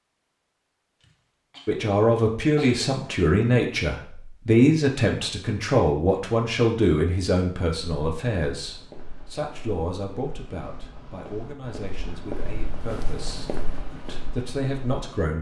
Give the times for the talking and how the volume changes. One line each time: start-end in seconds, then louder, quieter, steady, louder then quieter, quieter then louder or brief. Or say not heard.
1.6-15.3 quieter.